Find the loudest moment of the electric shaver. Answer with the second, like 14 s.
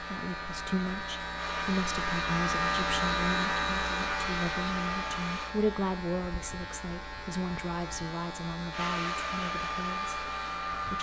3 s.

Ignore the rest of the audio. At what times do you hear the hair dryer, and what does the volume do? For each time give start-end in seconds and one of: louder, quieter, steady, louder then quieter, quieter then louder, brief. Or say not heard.
0.0-5.5 louder
8.7-10.9 brief.